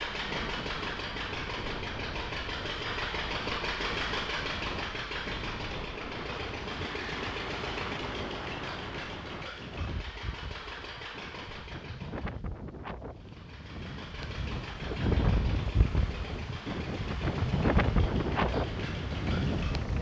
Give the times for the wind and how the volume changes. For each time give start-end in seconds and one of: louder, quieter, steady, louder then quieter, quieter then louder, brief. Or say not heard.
0.0-19.9 louder.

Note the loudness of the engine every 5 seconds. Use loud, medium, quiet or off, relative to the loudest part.
loud, loud, medium, medium.